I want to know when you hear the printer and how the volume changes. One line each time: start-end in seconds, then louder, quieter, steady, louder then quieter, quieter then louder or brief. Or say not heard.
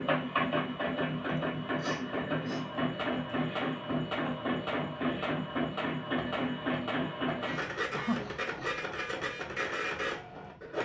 0.0-10.7 steady.